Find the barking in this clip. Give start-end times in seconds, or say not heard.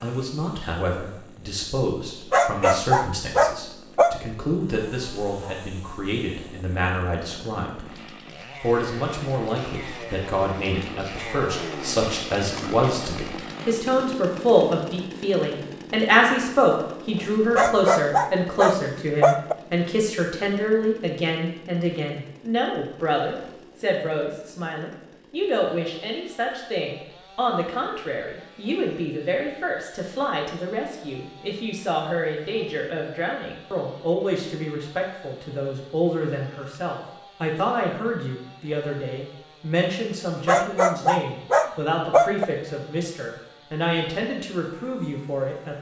2.3-4.2, 17.6-19.6, 40.5-42.5.